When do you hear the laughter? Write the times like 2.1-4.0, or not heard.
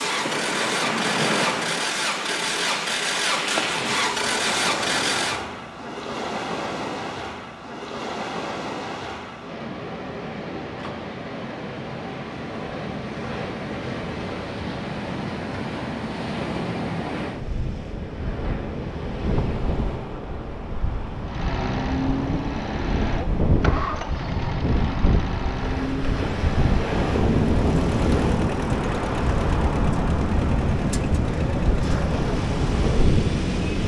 not heard.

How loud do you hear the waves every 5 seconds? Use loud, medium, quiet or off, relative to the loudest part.
loud, medium, medium, medium, medium, loud, loud.